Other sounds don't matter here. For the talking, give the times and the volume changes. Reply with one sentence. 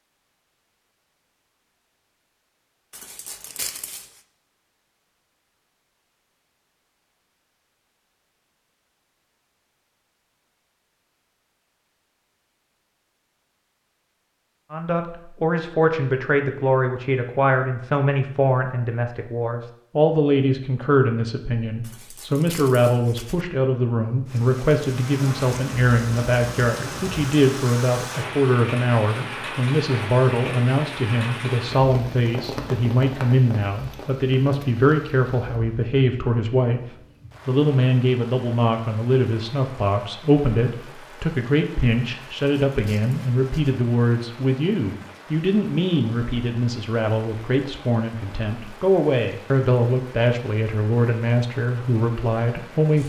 You can hear the talking from 14.7 to 36.8 s, at a steady volume; and from 37.5 to 53.0 s, at a steady volume.